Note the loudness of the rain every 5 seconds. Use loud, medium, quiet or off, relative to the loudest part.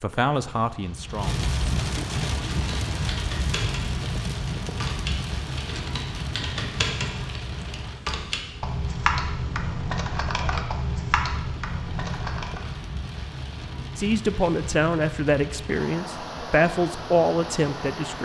loud, medium, medium, medium.